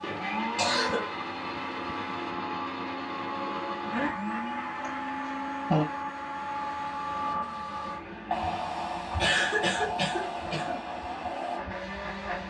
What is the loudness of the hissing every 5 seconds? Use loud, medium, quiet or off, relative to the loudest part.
medium, loud, loud.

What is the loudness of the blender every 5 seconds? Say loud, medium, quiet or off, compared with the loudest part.
loud, medium, medium.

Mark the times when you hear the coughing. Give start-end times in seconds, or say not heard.
0.6-1.1, 4.8-5.8, 9.2-10.8.